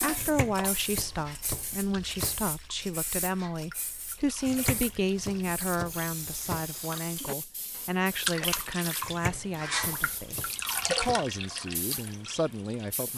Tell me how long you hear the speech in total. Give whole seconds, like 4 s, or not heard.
13 s.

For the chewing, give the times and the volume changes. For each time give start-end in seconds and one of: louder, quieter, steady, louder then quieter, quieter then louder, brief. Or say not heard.
not heard.